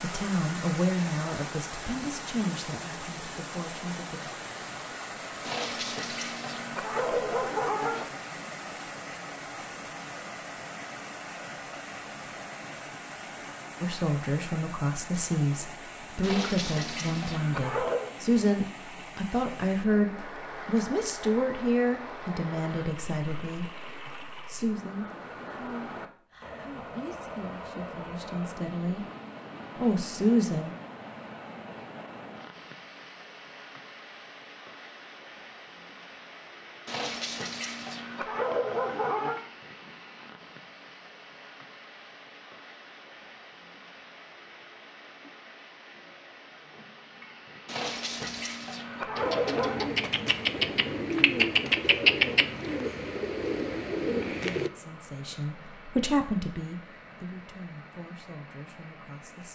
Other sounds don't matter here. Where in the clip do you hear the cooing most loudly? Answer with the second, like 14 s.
52 s.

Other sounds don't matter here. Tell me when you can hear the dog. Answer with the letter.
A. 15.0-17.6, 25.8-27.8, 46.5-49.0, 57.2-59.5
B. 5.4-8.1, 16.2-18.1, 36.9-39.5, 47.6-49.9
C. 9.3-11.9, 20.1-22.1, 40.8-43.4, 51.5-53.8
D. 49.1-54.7
B.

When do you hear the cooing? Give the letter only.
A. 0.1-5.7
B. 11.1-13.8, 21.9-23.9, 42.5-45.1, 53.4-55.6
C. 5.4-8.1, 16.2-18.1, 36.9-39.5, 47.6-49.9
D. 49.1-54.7
D.